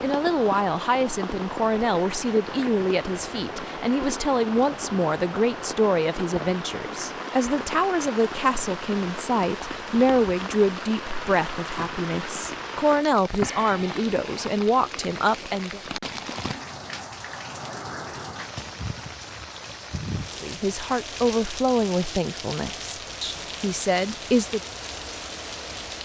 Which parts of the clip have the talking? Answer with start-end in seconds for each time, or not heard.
0.0-15.8, 20.4-24.6.